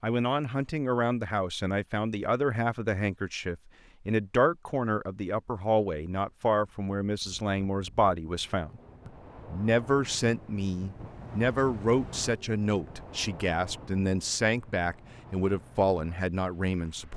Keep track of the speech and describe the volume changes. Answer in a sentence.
The loudness of the speech stays about the same.